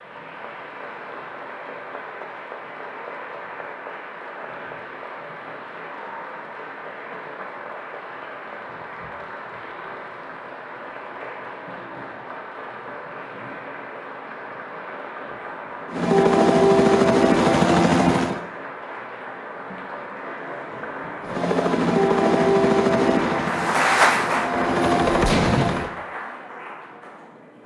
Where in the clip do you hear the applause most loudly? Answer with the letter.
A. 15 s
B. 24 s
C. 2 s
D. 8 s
B.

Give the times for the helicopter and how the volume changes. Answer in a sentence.
The helicopter can be heard briefly from 15.8 to 18.4 s; and from 21.2 to 25.9 s, getting quieter then louder.